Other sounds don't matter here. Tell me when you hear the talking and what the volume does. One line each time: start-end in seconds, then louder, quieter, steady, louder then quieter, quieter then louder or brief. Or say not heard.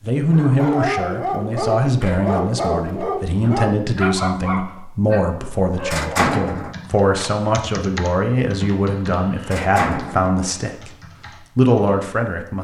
0.0-10.9 steady
11.6-12.5 brief.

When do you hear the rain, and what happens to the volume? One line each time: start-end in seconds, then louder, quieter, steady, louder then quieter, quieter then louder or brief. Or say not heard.
not heard.